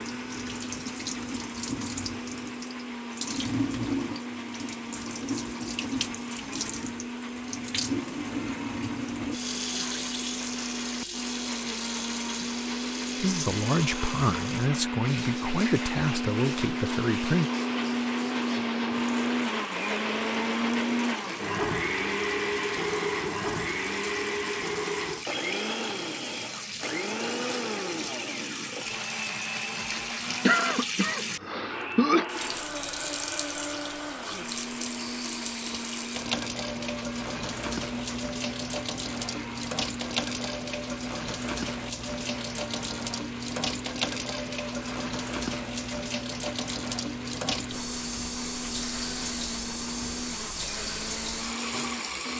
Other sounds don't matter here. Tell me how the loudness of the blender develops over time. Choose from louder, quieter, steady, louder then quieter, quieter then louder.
louder then quieter.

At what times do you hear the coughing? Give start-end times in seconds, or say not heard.
30.4-32.2.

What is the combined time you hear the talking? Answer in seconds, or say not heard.
4 s.